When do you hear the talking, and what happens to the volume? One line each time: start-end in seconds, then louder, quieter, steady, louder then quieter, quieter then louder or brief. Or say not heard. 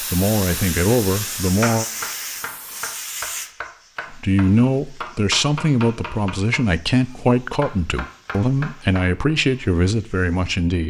0.0-1.9 brief
4.1-10.8 steady.